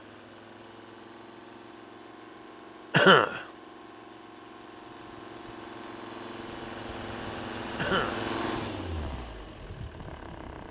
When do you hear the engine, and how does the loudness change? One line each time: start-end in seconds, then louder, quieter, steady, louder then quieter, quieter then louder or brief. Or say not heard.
0.0-10.6 louder.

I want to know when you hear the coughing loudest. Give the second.
3 s.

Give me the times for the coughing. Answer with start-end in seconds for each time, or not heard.
2.9-3.5, 7.8-8.3.